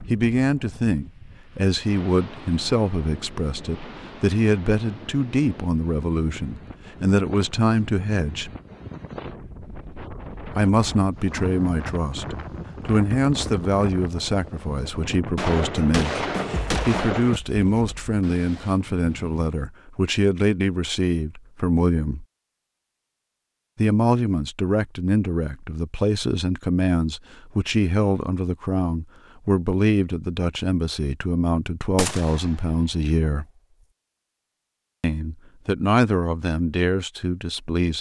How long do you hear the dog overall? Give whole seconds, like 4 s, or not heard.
not heard.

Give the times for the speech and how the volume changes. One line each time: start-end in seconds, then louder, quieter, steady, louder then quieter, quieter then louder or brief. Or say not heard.
0.1-8.5 steady
10.6-22.2 steady
23.8-33.5 steady
35.0-37.9 brief.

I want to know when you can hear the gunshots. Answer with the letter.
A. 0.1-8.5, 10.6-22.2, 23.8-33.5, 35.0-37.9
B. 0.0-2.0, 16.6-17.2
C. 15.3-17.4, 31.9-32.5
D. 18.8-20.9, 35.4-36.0
C.